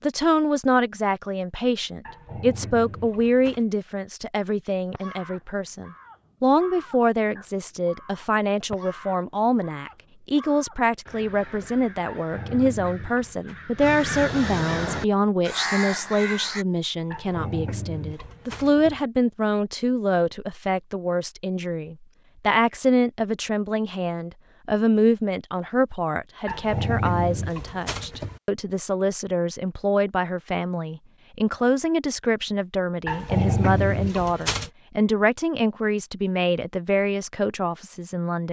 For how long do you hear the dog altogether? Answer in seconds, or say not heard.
9 s.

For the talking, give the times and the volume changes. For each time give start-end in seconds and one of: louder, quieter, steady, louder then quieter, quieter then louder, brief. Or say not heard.
0.0-38.4 steady.